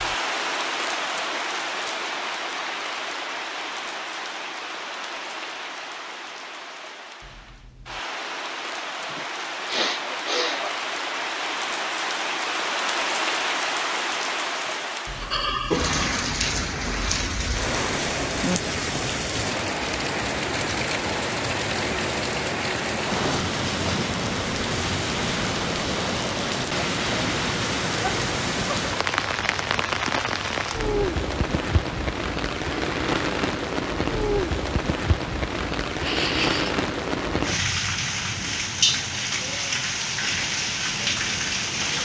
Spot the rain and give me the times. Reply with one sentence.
You can hear the rain from 0.0 to 42.0 s.